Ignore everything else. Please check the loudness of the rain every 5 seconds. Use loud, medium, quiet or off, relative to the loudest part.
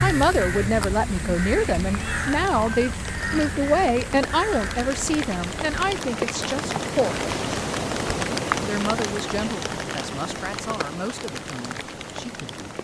medium, loud, medium.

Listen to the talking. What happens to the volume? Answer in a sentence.
The volume of the talking goes down.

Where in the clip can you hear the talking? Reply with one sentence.
You can hear the talking from 0.0 to 7.2 s and from 8.6 to 12.8 s.